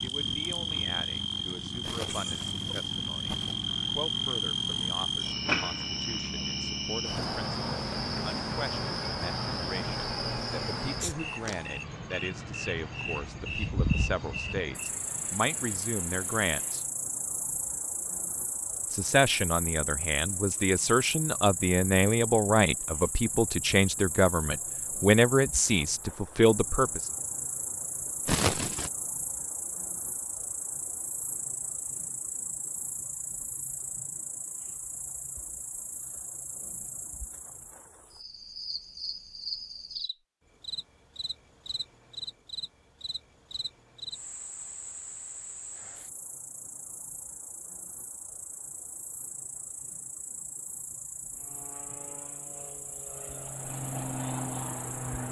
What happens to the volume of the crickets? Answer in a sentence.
The loudness of the crickets goes down.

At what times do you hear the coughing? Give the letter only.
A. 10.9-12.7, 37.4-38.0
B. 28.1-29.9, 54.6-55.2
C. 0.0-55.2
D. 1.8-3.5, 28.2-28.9
D.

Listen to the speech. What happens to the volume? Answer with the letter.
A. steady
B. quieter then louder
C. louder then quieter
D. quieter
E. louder
E.